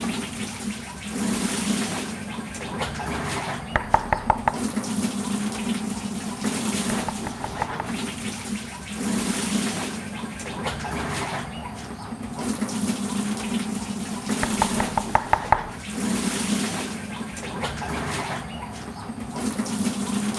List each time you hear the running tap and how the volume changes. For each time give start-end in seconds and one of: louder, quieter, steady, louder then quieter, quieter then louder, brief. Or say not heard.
0.0-20.3 steady.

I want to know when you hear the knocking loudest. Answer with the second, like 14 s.
15 s.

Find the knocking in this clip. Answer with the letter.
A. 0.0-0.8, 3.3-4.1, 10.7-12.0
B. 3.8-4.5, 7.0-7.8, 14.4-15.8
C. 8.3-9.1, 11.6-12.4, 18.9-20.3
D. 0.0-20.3
B.